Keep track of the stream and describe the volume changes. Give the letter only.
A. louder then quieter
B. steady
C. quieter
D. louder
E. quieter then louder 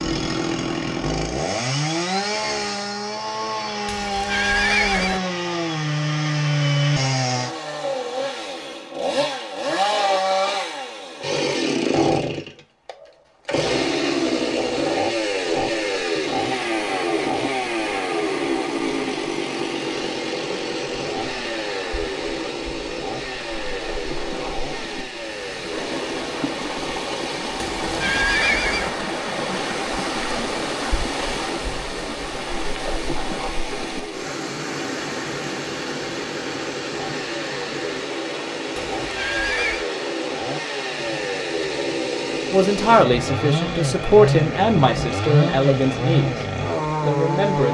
A.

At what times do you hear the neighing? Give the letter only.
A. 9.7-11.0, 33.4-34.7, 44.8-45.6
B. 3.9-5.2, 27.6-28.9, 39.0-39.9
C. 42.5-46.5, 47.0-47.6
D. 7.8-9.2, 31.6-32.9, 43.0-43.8
B.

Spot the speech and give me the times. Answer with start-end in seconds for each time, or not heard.
42.5-46.5, 47.0-47.6.